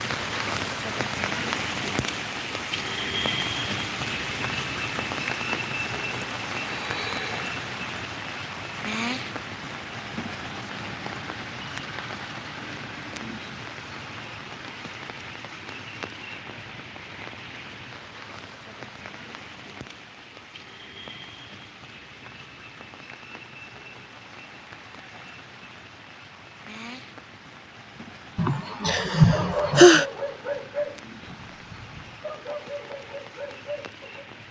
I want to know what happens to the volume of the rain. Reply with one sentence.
The loudness of the rain goes down.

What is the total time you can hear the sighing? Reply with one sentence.
You can hear the sighing for 3 seconds altogether.